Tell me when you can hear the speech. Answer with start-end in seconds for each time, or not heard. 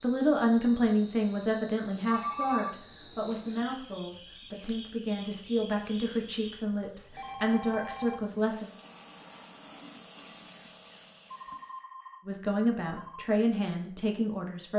0.0-8.7, 12.2-14.7.